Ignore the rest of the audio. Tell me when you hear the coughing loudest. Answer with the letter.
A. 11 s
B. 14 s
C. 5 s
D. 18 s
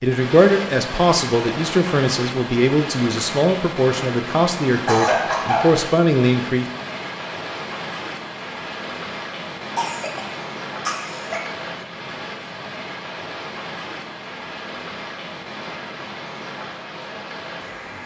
C.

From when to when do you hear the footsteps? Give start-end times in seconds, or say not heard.
not heard.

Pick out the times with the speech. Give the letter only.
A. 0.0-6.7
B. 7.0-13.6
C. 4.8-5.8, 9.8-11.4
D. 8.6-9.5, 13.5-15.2
A.